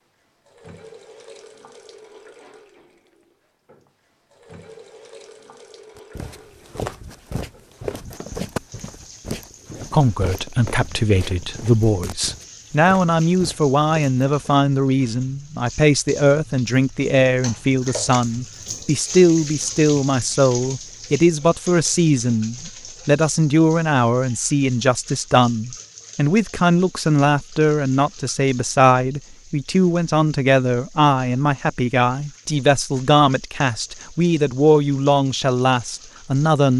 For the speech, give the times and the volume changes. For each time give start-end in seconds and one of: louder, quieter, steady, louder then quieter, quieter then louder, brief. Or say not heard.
9.9-36.7 steady.